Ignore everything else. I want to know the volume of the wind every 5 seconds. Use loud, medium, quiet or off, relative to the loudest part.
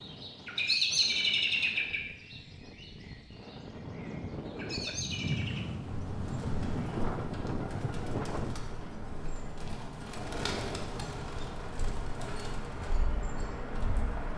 medium, loud, off.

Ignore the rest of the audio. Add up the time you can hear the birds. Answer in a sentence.
You can hear the birds for 14 seconds altogether.